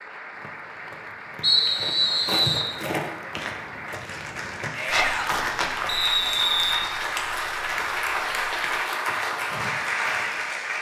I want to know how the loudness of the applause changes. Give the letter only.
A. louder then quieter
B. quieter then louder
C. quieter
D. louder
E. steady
D.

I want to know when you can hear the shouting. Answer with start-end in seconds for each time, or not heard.
4.8-5.5.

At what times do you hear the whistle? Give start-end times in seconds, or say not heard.
1.4-2.7, 5.8-6.8.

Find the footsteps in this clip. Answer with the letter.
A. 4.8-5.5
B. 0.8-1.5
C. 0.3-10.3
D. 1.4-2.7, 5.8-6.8
C.